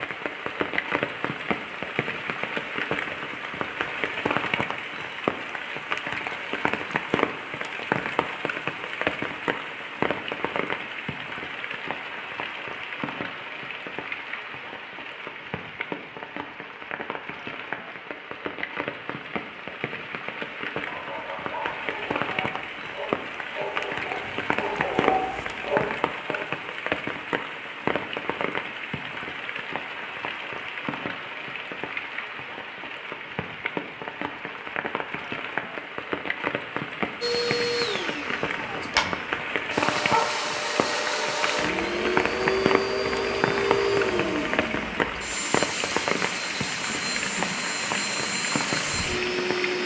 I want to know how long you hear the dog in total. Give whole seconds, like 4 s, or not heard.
6 s.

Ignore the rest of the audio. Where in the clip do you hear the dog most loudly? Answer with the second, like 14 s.
25 s.